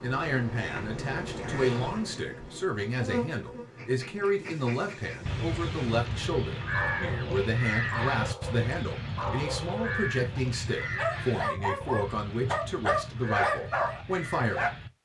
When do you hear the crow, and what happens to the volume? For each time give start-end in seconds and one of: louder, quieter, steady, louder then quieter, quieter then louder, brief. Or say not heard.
5.2-14.9 quieter.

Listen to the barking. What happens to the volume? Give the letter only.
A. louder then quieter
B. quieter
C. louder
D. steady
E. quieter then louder
C.